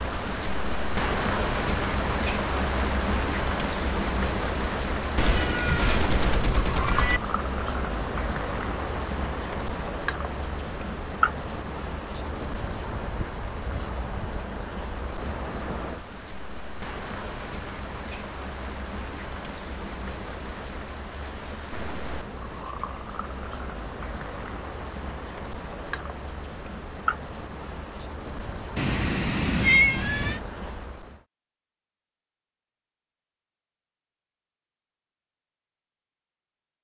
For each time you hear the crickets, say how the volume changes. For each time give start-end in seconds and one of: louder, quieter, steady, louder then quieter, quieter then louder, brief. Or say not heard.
0.0-31.2 quieter.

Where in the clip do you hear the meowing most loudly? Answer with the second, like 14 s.
30 s.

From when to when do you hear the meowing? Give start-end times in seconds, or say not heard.
5.2-7.2, 28.8-30.4.